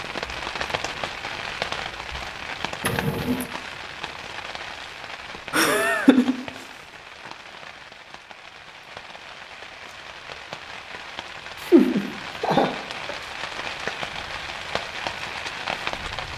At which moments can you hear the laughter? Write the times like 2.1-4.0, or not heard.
2.8-3.5, 5.5-6.3, 11.6-13.2.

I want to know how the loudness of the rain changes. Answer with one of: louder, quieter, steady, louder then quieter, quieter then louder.
quieter then louder.